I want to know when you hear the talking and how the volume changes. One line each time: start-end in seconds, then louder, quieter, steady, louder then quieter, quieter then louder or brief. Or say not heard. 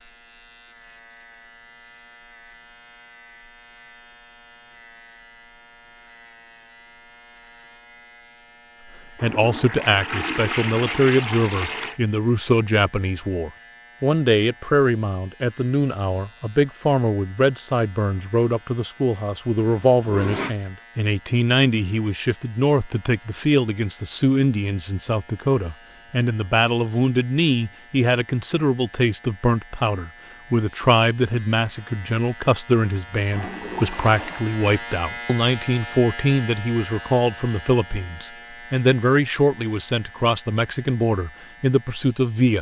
9.2-42.5 steady.